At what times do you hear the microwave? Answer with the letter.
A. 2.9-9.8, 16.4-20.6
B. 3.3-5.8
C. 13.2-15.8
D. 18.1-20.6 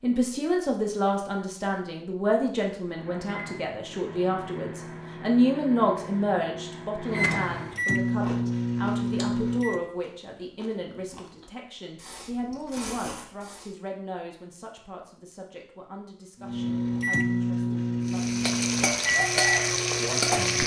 A.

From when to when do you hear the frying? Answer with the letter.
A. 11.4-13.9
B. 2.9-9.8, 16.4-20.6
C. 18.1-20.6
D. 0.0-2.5
C.